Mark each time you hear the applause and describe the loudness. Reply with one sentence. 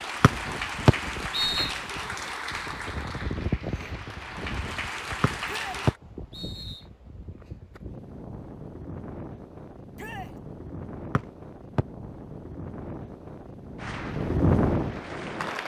You can hear the applause from 0.0 to 6.0 s, getting quieter then louder; and briefly from 13.8 to 15.6 s.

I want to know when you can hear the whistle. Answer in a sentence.
You can hear the whistle from 0.2 to 1.7 s, from 5.2 to 6.8 s and from 11.2 to 11.8 s.